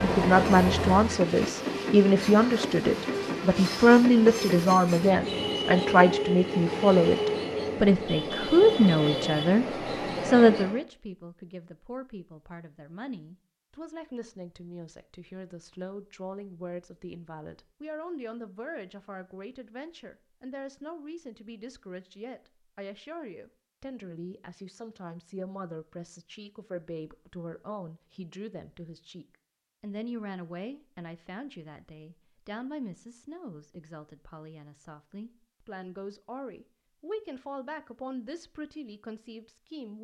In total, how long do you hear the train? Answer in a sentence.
You can hear the train for 11 seconds altogether.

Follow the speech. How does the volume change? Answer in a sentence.
The volume of the speech goes down.